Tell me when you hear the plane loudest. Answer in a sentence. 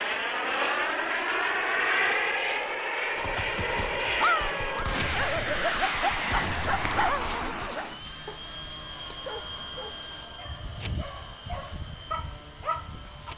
The loudest moment of the plane is at 2 seconds.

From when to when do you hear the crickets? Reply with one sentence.
The crickets can be heard from 0.0 to 13.3 s.